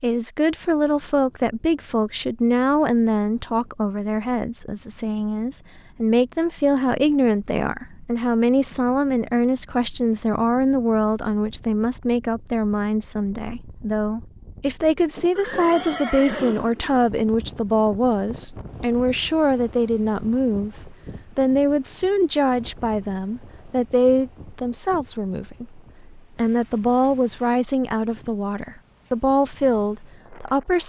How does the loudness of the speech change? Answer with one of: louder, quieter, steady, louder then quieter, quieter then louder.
steady.